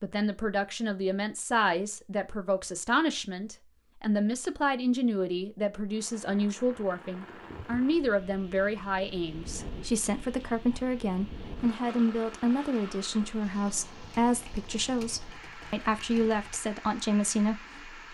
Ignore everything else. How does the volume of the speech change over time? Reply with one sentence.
The loudness of the speech stays about the same.